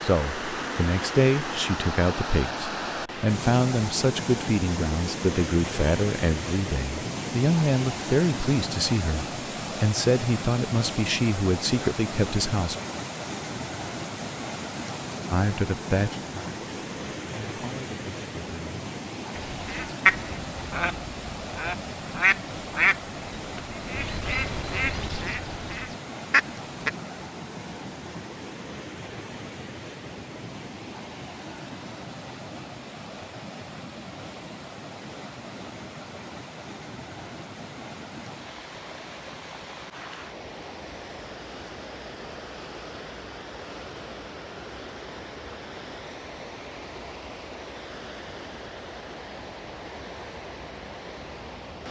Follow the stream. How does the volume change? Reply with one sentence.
The volume of the stream goes down.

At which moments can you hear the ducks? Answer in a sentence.
The ducks can be heard from 19.4 to 26.9 s.